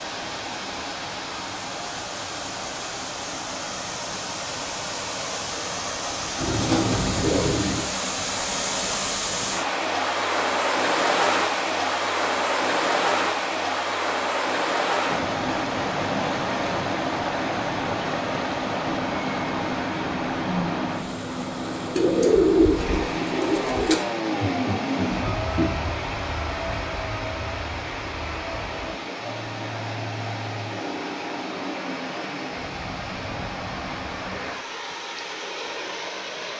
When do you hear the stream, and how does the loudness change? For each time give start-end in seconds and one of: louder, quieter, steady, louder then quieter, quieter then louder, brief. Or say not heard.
0.0-36.5 louder then quieter.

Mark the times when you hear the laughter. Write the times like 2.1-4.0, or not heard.
24.4-25.9.